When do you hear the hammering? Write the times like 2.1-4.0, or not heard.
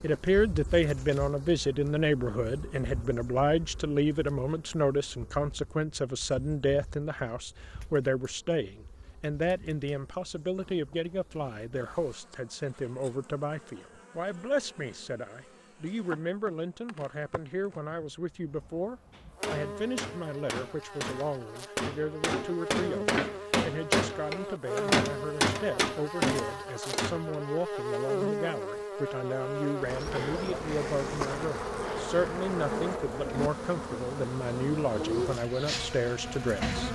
19.1-27.4.